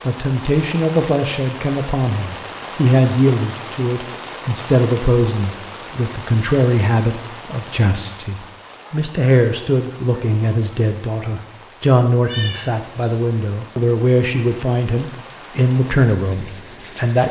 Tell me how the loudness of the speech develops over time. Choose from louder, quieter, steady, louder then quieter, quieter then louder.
steady.